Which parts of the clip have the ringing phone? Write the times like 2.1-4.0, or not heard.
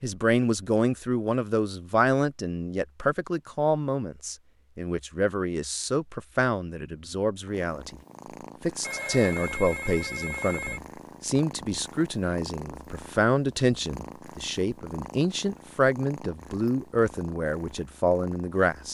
8.8-10.8.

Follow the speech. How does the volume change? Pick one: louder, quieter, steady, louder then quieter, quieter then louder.
steady.